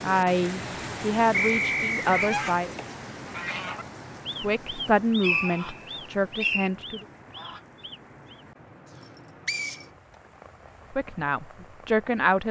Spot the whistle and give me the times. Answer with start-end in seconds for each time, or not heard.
1.3-2.4, 5.2-6.7, 9.4-9.8.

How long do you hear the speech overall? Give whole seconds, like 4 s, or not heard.
7 s.